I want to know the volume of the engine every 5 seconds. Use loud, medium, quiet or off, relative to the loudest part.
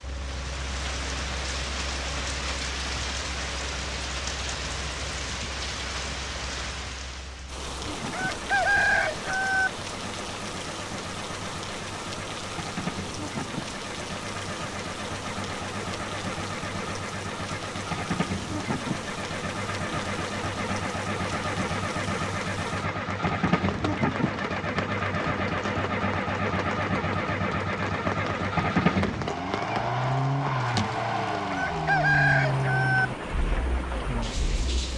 quiet, quiet, medium, medium, loud, loud, loud.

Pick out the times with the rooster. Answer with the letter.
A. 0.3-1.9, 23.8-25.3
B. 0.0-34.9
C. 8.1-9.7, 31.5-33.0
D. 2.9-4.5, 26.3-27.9
C.